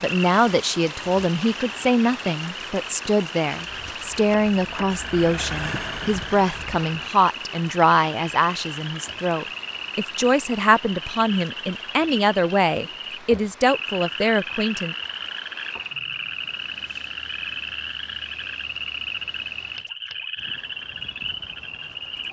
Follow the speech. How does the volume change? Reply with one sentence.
The loudness of the speech stays about the same.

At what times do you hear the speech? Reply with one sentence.
You can hear the speech from 0.0 to 14.9 s.